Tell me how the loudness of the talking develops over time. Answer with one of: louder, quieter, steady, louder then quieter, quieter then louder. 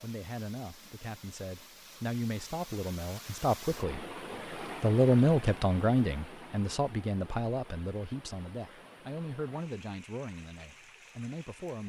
louder then quieter.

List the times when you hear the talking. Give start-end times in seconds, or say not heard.
0.0-4.0, 4.8-11.8.